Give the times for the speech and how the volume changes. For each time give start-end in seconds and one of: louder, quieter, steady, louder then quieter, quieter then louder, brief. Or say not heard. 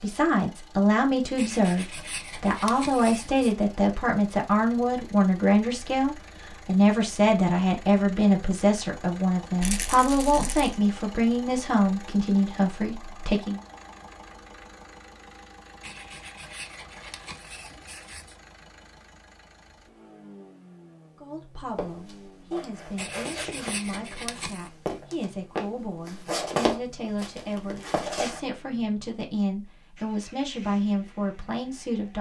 0.0-13.6 steady
21.1-32.1 louder.